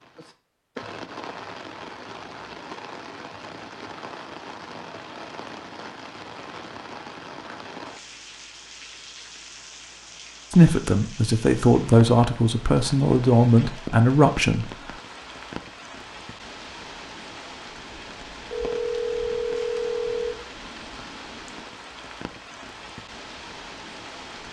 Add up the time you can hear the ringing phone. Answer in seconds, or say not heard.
2 s.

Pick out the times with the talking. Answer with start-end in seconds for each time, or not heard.
10.5-14.7.